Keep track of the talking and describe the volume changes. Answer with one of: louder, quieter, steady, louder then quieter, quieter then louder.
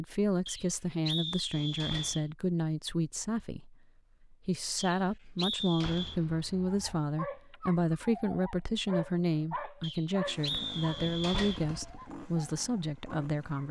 steady.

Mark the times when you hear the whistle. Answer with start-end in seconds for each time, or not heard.
0.5-2.2, 4.8-6.2, 9.8-11.7.